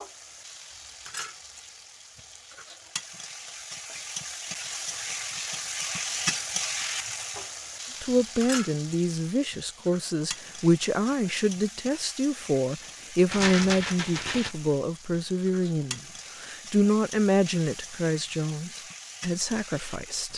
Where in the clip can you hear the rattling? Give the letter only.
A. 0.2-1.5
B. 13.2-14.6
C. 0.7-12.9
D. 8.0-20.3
B.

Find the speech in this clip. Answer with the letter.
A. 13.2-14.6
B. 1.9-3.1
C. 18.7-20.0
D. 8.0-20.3
D.